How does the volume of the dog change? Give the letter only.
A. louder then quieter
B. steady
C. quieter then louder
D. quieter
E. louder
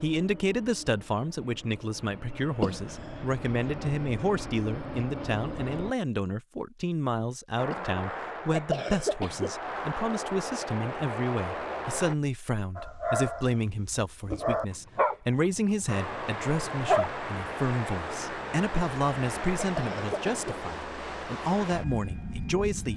A.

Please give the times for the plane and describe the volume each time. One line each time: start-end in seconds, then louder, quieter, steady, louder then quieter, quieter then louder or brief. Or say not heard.
0.0-6.0 louder
7.5-12.2 quieter then louder
15.8-22.9 steady.